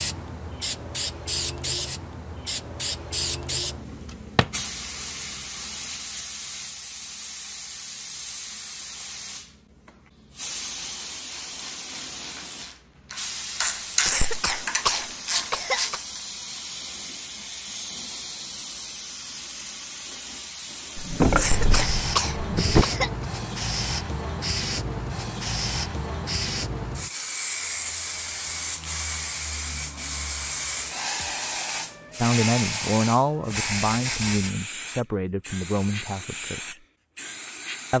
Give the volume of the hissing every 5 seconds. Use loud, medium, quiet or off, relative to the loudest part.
loud, medium, medium, medium, loud, loud, loud, medium.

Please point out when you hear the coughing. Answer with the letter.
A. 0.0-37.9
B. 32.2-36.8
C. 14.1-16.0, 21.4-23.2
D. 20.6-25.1
C.